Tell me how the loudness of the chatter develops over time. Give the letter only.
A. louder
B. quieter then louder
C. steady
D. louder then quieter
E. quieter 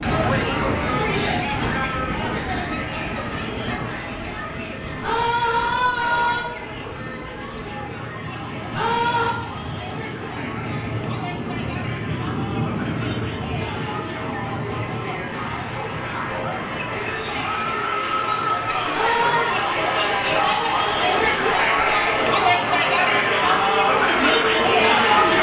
B.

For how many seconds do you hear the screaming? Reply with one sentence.
You can hear the screaming for 3 seconds altogether.